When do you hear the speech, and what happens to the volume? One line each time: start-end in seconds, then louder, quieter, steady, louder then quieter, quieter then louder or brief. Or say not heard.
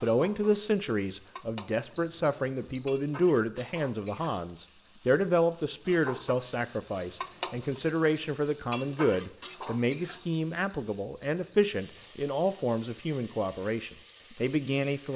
0.0-15.1 steady.